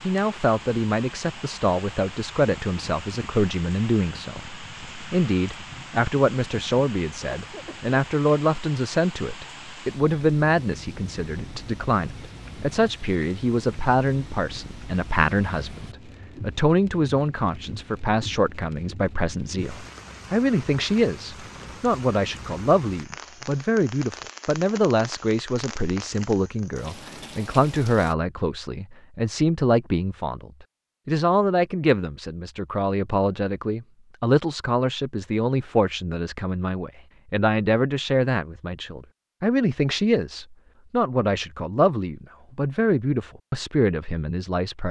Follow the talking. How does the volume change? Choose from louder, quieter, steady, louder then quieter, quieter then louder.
steady.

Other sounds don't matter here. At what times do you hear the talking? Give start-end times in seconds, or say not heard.
0.0-44.8.